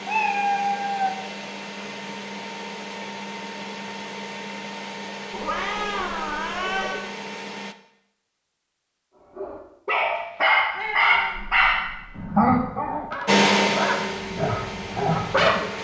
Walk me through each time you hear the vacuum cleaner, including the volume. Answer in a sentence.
You can hear the vacuum cleaner from 0.0 to 7.8 s, at a steady volume; and briefly from 13.2 to 15.7 s.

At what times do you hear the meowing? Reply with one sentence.
You can hear the meowing from 0.1 to 1.1 s, from 5.3 to 7.0 s and from 10.8 to 12.2 s.